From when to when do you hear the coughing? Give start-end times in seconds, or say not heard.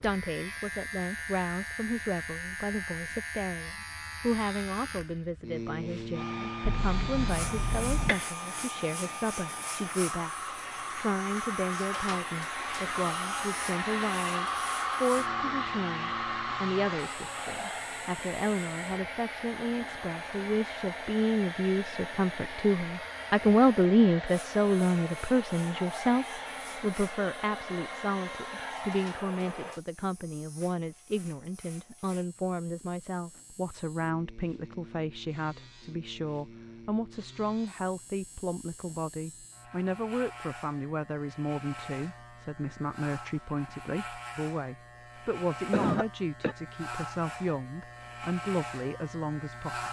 6.6-8.3, 45.5-46.5.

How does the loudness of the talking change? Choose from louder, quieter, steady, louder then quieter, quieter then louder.
louder then quieter.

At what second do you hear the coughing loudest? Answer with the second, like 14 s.
46 s.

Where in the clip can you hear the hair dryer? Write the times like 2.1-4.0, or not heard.
6.1-29.8.